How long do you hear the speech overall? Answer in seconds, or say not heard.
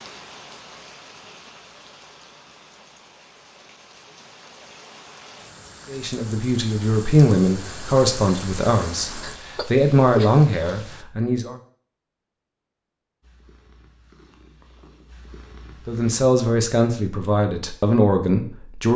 9 s.